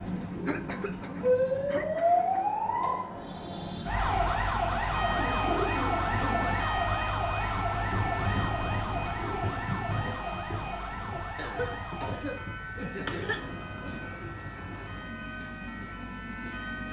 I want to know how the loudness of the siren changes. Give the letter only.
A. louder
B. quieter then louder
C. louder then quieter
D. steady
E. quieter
E.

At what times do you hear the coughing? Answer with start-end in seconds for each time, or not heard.
0.5-2.5, 11.3-13.4.